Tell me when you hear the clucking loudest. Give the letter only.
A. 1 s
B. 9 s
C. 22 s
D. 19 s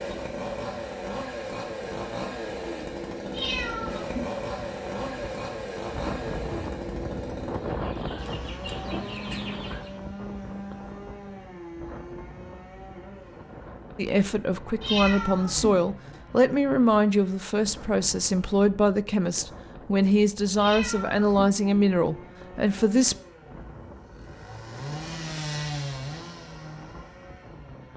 B.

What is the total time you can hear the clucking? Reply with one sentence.
The clucking can be heard for 2 seconds in total.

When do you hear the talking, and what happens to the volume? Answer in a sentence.
The talking can be heard from 13.9 to 23.1 s, at a steady volume.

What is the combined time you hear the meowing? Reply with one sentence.
You can hear the meowing for 3 seconds altogether.